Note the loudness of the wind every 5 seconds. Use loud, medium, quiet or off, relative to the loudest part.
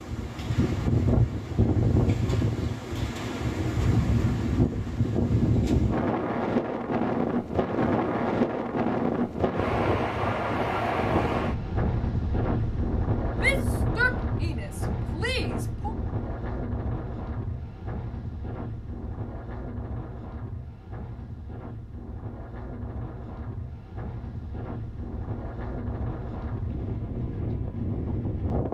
loud, loud, loud, medium, quiet, medium.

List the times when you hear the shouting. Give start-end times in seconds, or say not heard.
13.3-15.9.